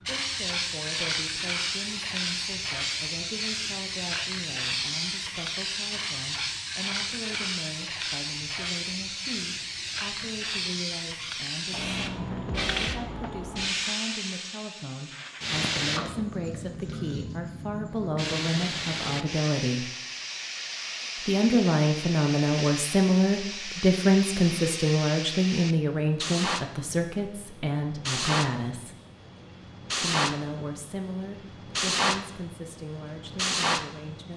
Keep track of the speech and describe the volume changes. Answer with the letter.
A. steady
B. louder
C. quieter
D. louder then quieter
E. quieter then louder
D.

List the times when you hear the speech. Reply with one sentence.
You can hear the speech from 0.1 to 19.9 s, from 21.2 to 28.9 s and from 29.9 to 34.3 s.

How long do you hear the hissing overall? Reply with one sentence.
You can hear the hissing for 34 seconds altogether.